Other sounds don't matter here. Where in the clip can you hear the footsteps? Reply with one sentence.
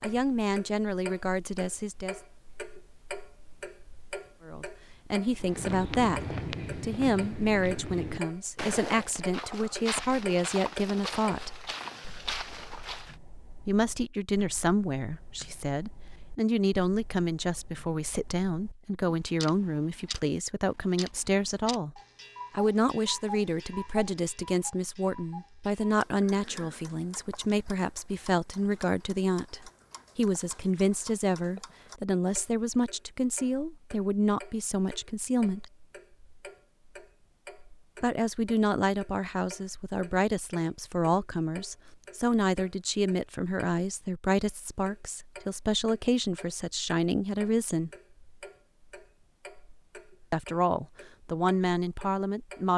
You can hear the footsteps from 5.3 to 13.2 s.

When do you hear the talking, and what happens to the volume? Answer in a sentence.
The talking can be heard briefly from 0.0 to 2.2 s; from 4.5 to 11.5 s, at a steady volume; from 13.7 to 35.7 s, at a steady volume; from 38.0 to 47.9 s, at a steady volume; and briefly from 50.3 to 52.7 s.